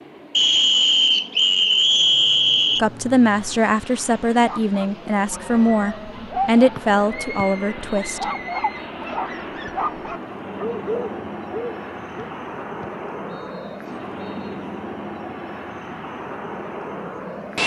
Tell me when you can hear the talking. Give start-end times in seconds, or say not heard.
2.8-8.2.